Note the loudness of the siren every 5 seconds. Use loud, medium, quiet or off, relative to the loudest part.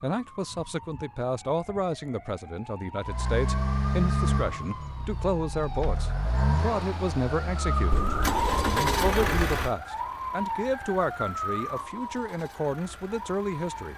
medium, loud, loud.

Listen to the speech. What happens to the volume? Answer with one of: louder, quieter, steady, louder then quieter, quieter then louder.
steady.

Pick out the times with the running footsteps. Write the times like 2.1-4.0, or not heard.
not heard.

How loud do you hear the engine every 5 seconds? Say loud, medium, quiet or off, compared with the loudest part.
loud, loud, quiet.